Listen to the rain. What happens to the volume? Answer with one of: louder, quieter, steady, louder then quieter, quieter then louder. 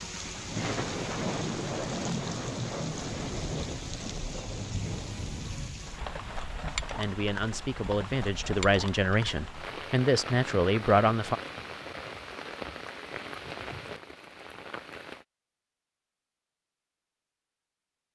quieter.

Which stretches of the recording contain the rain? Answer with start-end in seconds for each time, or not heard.
0.0-15.2.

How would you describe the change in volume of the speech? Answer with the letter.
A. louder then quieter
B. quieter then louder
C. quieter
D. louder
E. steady
D.